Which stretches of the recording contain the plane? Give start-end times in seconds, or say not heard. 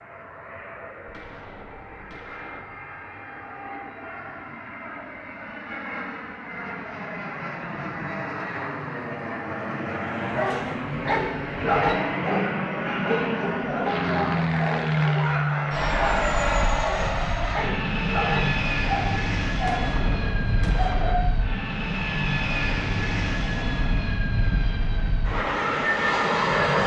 0.0-26.8.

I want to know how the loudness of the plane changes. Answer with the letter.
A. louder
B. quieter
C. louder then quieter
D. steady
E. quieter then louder
A.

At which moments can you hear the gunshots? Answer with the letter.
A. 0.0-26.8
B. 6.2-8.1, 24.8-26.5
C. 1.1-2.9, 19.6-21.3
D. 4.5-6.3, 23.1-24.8
C.